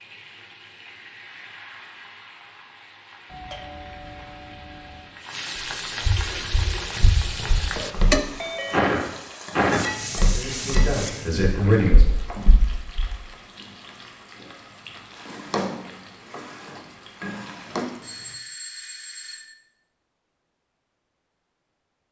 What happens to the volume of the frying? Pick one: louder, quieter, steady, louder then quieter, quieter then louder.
louder then quieter.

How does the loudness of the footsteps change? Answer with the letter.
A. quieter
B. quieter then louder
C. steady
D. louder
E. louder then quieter
E.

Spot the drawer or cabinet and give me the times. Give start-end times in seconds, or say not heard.
15.2-17.9.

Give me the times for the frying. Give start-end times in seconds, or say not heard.
0.0-18.4.